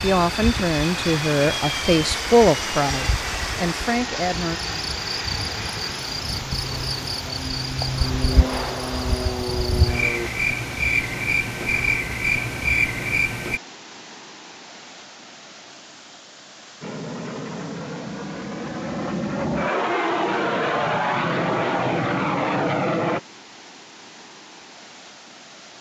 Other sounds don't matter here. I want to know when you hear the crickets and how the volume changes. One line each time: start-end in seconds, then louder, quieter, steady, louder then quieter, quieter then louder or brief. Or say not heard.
0.0-13.6 louder.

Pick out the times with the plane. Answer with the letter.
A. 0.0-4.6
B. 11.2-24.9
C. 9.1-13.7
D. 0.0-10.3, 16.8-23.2
D.